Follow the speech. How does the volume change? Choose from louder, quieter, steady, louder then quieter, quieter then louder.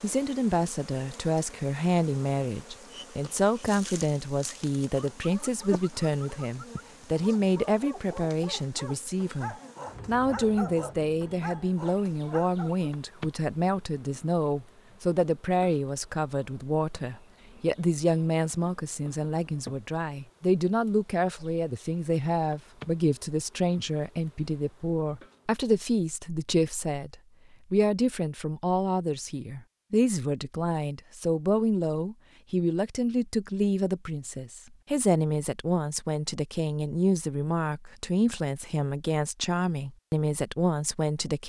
steady.